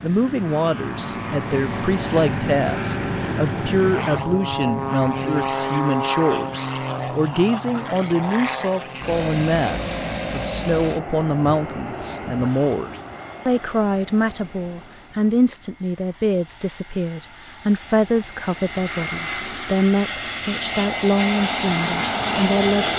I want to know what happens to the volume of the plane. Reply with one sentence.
The loudness of the plane goes down, then up.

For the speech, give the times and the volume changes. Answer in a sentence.
You can hear the speech from 0.0 to 22.9 s, at a steady volume.